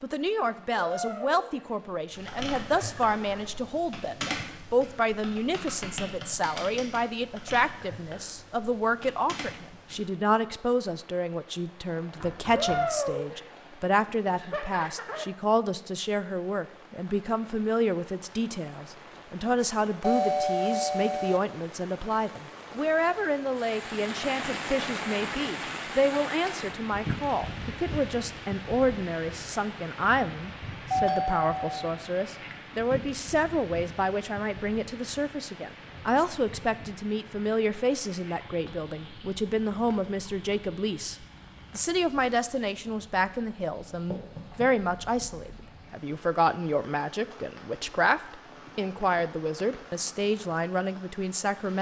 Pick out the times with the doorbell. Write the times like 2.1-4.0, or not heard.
20.0-21.4, 30.9-31.7.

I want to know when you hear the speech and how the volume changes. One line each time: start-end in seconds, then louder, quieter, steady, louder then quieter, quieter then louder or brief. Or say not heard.
0.0-51.7 steady.